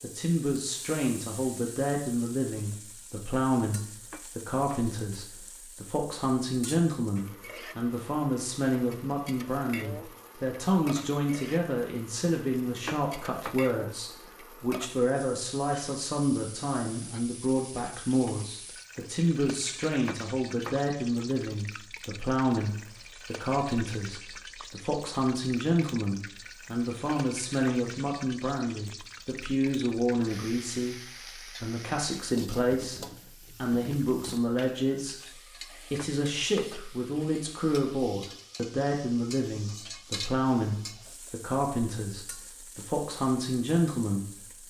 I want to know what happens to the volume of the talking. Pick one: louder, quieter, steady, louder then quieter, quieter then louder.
steady.